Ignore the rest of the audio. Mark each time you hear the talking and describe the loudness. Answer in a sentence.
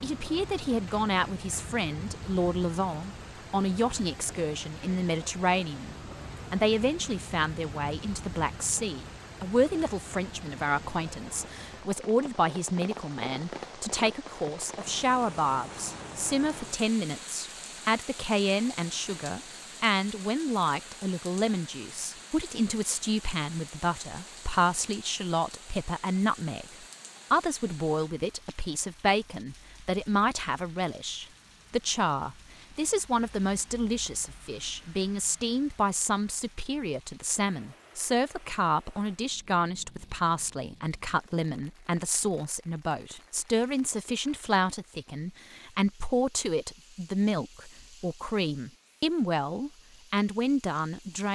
The talking can be heard from 0.0 to 26.6 s, at a steady volume; and from 27.3 to 51.2 s, at a steady volume.